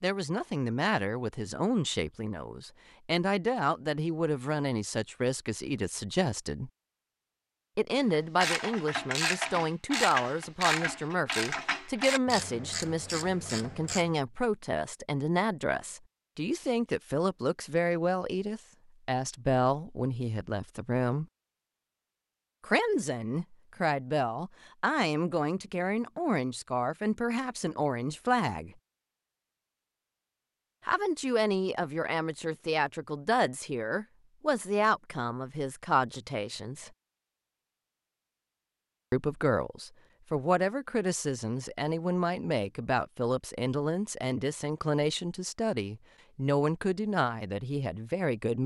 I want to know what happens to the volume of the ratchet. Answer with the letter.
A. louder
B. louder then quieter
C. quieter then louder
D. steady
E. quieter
E.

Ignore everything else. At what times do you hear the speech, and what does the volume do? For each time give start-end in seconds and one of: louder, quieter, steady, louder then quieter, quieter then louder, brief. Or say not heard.
0.0-6.7 steady
7.8-21.2 steady
22.6-28.7 steady
30.9-36.9 steady
39.1-48.6 steady.